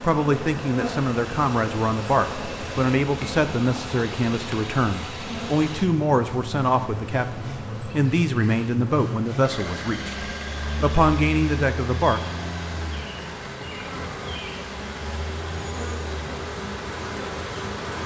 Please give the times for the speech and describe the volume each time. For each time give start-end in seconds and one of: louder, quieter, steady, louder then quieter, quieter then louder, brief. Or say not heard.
0.0-12.2 steady.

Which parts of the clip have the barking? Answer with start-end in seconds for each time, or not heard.
not heard.